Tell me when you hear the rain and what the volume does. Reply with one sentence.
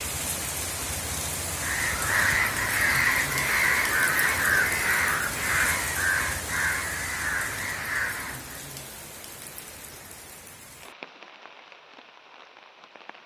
You can hear the rain from 0.0 to 13.2 s, getting quieter.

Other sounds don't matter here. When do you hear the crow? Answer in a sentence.
You can hear the crow from 1.6 to 8.7 s.